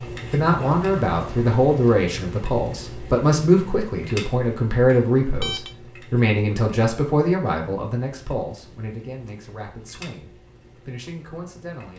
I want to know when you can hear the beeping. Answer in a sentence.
You can hear the beeping from 4.9 to 5.8 s.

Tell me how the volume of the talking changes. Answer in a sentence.
The loudness of the talking goes down.